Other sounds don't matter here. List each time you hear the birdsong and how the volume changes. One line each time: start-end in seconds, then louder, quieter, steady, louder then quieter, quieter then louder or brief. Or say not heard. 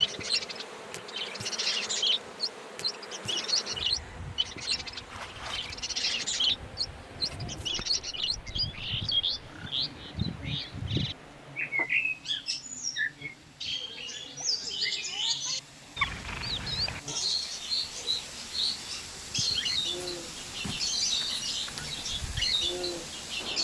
0.0-23.5 steady.